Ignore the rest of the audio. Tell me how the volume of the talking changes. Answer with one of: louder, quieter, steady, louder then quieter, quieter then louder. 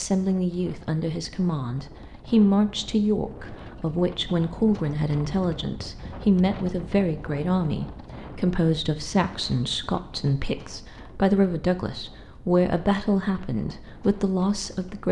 steady.